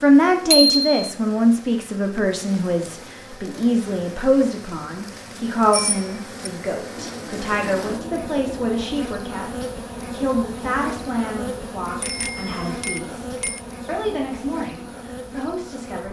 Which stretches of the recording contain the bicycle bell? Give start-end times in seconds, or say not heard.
0.5-0.9, 5.7-6.5, 12.0-13.6.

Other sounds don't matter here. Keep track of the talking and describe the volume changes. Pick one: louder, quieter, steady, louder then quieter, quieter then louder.
quieter.